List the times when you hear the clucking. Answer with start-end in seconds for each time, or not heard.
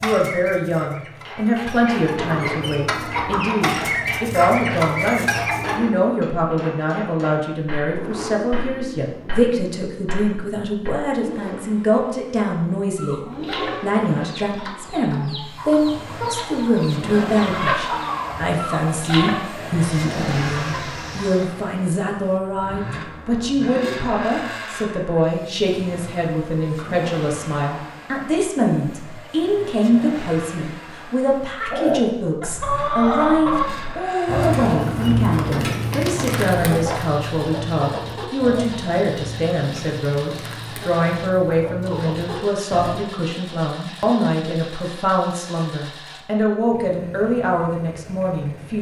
0.0-5.9, 12.8-21.5, 31.7-43.1.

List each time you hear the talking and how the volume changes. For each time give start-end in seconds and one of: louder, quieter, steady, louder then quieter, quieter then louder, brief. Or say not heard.
0.0-48.7 steady.